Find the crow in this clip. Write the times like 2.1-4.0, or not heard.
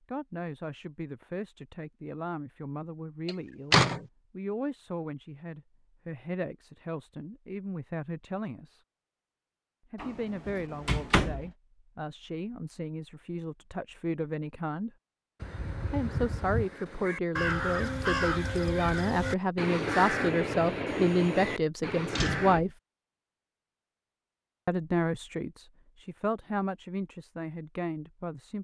15.4-22.6.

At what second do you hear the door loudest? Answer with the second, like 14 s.
4 s.